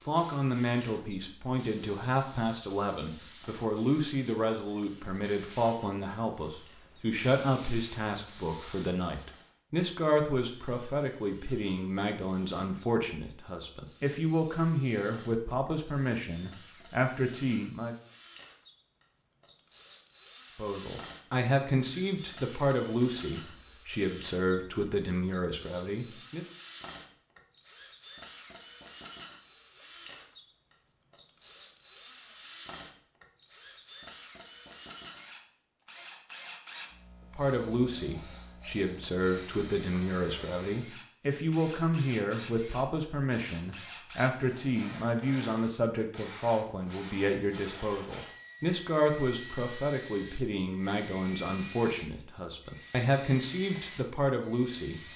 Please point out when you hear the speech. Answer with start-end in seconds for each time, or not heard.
0.1-17.9, 20.6-26.4, 37.3-55.1.